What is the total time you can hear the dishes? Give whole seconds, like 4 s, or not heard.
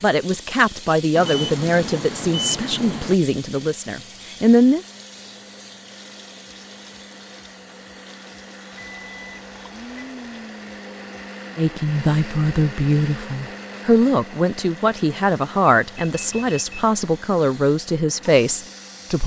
not heard.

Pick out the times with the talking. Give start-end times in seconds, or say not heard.
0.0-4.8, 11.6-19.2.